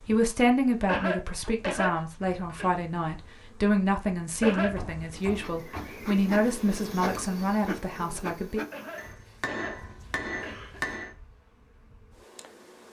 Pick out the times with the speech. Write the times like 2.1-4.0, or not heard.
0.1-8.6.